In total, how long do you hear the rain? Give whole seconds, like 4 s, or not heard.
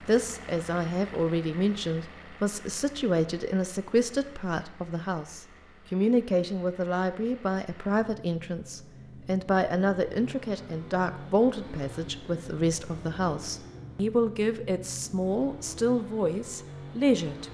not heard.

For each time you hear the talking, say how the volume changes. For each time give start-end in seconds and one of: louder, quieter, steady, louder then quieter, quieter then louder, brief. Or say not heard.
0.1-17.5 steady.